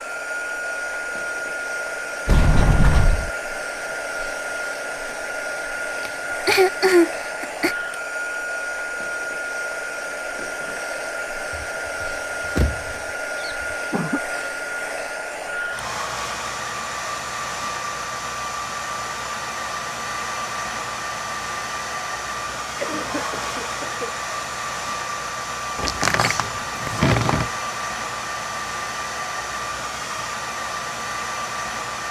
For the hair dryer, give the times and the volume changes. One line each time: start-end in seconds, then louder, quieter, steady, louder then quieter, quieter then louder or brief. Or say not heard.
0.0-32.0 steady.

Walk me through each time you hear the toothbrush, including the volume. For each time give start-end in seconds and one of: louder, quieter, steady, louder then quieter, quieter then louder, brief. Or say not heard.
not heard.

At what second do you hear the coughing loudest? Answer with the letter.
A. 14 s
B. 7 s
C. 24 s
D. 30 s
B.